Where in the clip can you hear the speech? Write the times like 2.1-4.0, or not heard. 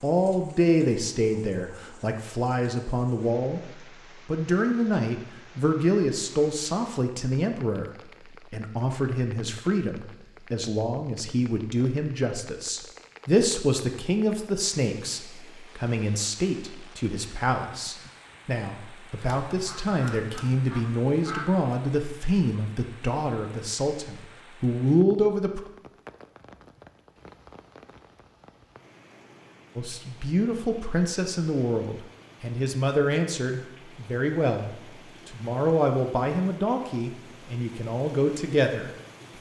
0.0-7.9, 8.5-25.6, 29.8-38.9.